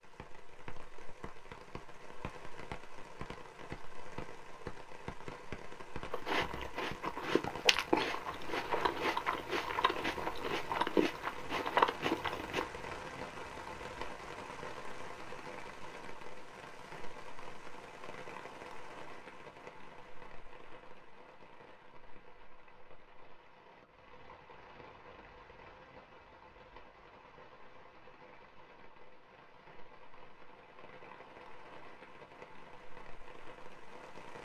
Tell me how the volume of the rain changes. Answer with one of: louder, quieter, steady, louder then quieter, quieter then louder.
quieter.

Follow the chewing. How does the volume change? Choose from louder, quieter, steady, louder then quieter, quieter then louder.
louder.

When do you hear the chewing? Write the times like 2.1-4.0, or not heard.
6.1-12.7.